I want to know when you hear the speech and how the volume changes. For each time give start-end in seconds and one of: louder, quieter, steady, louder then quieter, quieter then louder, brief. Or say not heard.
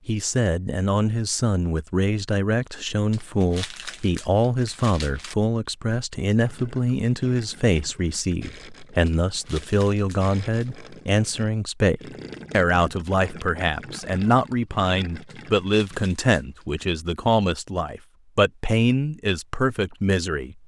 0.1-20.6 steady.